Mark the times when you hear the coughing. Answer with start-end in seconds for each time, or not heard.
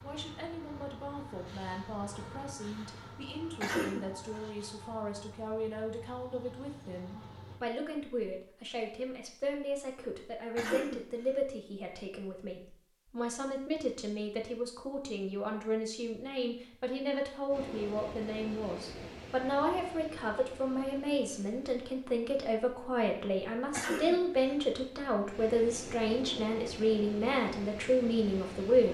3.6-4.4, 10.6-11.1, 23.7-24.6.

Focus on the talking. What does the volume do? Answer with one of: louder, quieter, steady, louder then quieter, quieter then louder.
louder.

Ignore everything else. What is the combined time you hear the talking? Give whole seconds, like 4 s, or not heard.
29 s.